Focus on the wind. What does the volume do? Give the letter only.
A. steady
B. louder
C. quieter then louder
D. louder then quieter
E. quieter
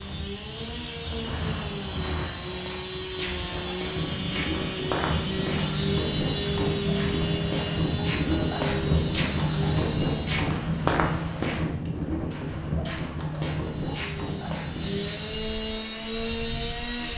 D.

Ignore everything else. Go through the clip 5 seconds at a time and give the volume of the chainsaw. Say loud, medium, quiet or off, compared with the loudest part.
loud, loud, medium, loud.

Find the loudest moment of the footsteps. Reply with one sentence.
The volume of the footsteps peaks at 11 seconds.